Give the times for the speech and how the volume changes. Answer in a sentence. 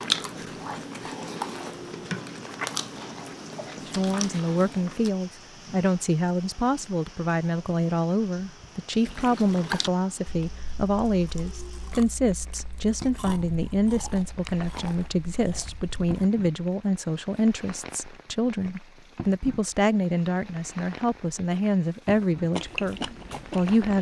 You can hear the speech from 3.9 to 23.9 s, at a steady volume.